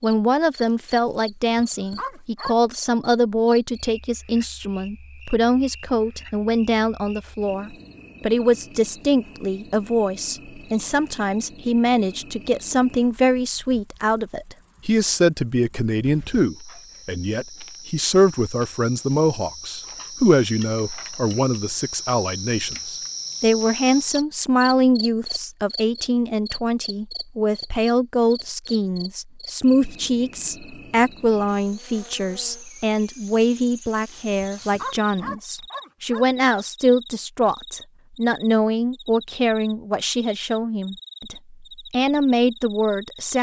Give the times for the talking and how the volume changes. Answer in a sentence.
The talking can be heard from 0.0 to 43.3 s, at a steady volume.